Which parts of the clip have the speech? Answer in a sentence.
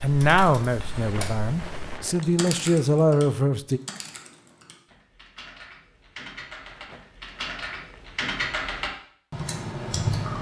You can hear the speech from 0.0 to 3.8 s.